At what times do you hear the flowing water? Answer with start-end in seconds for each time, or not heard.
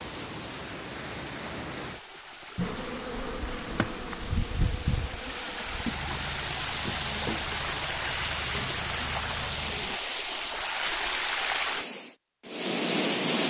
0.0-13.4.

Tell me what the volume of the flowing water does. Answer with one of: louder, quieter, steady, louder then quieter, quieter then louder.
louder.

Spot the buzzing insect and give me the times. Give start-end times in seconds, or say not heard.
2.5-10.0.